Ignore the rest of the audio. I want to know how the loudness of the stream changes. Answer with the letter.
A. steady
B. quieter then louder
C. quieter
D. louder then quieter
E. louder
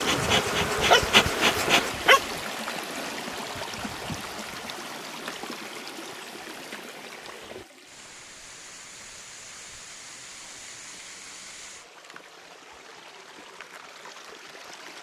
C.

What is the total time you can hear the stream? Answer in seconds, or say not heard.
15 s.